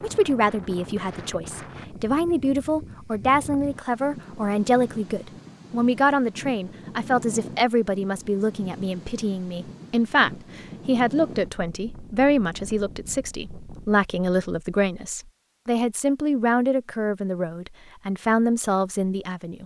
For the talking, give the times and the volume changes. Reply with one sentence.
The talking can be heard from 0.0 to 19.6 s, at a steady volume.